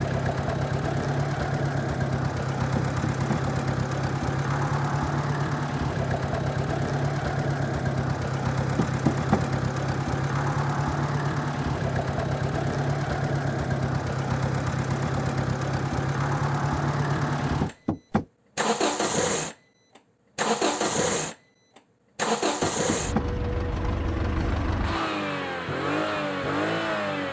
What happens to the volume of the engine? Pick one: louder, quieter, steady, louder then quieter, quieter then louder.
steady.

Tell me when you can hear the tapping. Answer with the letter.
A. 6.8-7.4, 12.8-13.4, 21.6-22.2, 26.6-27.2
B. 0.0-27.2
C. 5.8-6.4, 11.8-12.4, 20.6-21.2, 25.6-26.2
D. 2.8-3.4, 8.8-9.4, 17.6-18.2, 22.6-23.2
D.